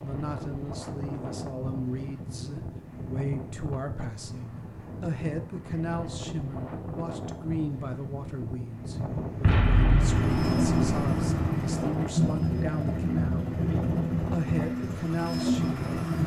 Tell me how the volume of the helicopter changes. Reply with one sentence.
The loudness of the helicopter stays about the same.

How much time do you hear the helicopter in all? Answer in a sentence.
You can hear the helicopter for 6 seconds altogether.